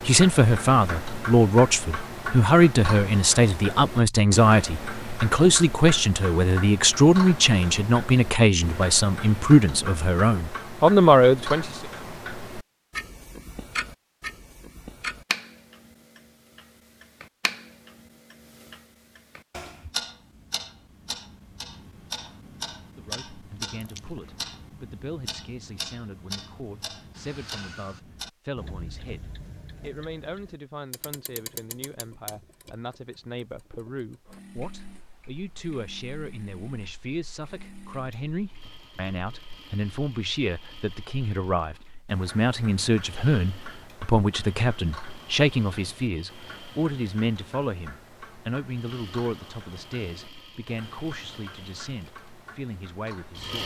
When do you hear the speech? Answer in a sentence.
The speech can be heard from 0.0 to 11.8 s and from 22.9 to 53.6 s.